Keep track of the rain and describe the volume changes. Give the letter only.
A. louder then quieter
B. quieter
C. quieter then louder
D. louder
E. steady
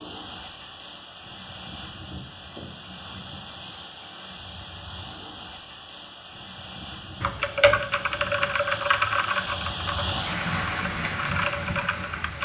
D.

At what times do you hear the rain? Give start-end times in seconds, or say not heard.
0.0-12.4.